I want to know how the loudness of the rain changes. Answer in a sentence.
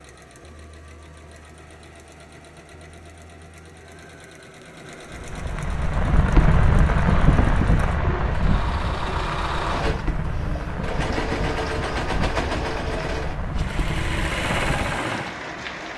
The volume of the rain goes down.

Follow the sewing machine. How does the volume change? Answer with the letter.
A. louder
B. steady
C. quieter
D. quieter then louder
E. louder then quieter
A.